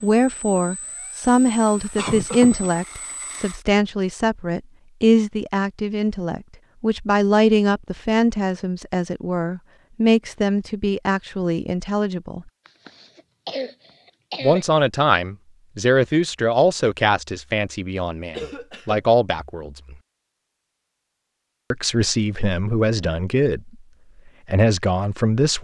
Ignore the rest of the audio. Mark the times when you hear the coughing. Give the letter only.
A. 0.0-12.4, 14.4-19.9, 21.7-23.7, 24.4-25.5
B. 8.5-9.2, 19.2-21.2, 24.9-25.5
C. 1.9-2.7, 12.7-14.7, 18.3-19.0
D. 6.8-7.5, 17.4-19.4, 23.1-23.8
C.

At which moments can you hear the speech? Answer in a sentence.
You can hear the speech from 0.0 to 12.4 s, from 14.4 to 19.9 s, from 21.7 to 23.7 s and from 24.4 to 25.5 s.